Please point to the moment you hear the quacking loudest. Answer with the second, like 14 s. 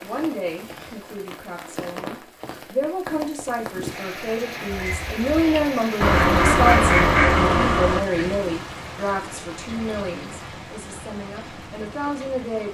7 s.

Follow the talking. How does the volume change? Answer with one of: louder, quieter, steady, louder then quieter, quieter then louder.
louder then quieter.